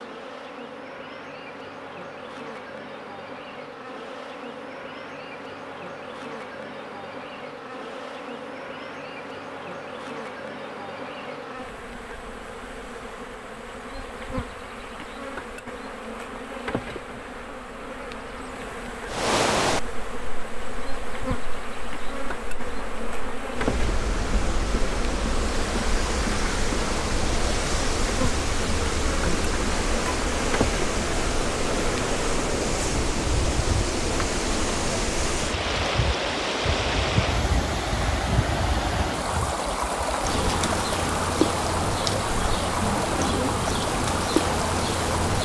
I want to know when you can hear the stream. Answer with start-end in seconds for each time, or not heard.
19.1-45.3.